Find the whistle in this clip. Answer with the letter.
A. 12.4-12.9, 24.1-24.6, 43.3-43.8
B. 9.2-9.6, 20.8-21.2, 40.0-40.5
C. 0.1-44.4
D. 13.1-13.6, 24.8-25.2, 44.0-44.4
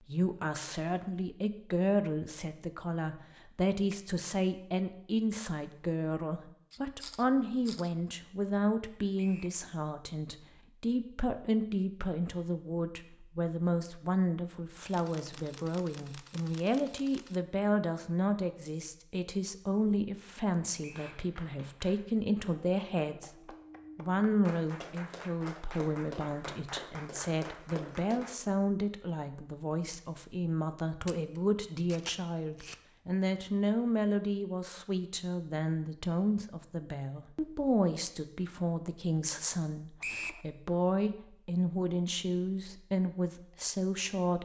B.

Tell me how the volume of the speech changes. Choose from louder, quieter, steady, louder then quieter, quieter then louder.
steady.